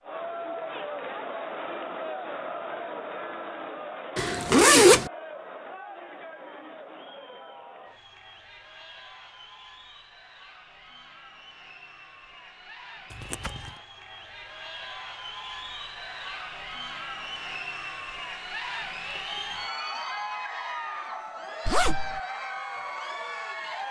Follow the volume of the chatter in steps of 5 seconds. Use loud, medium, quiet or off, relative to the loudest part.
loud, medium, medium, loud, loud.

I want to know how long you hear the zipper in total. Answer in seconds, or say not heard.
2 s.